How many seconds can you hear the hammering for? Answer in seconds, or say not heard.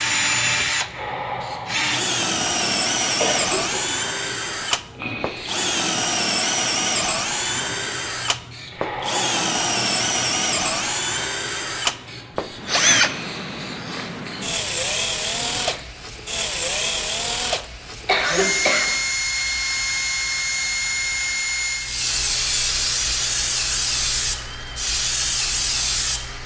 not heard.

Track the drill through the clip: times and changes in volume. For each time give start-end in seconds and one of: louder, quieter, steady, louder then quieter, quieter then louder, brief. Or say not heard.
0.0-26.4 quieter.